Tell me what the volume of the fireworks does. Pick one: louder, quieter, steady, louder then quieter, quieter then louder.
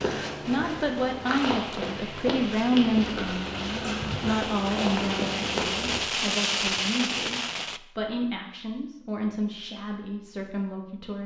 louder.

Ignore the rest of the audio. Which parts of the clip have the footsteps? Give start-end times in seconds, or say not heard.
0.0-6.0.